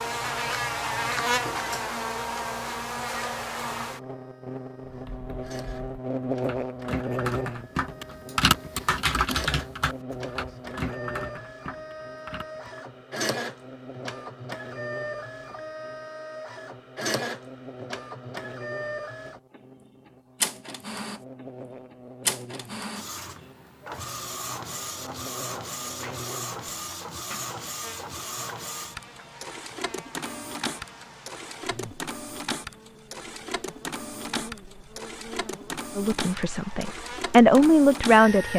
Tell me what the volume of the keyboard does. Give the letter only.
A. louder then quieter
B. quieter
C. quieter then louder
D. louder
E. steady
A.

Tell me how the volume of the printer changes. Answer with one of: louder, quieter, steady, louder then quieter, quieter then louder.
louder.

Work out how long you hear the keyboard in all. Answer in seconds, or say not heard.
8 s.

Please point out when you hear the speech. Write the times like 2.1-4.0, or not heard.
36.0-38.5.